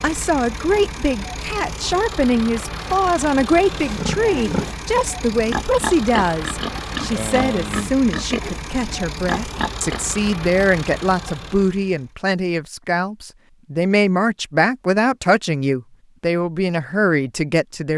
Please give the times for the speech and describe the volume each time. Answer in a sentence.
You can hear the speech from 0.0 to 17.9 s, at a steady volume.